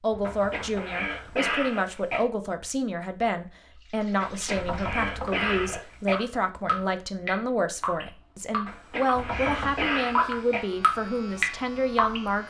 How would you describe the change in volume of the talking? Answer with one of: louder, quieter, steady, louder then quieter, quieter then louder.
steady.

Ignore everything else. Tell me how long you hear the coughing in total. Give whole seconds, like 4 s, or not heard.
6 s.